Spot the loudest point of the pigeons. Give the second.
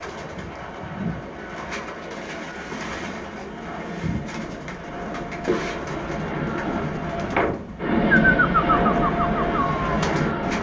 8 s.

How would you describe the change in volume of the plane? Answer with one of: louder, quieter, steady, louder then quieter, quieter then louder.
louder.